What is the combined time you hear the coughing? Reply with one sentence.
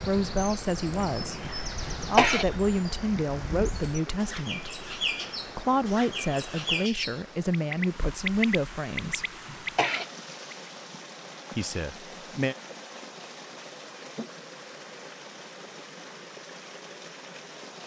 The coughing can be heard for 2 seconds in total.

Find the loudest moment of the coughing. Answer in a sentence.
The loudest moment of the coughing is at 2 seconds.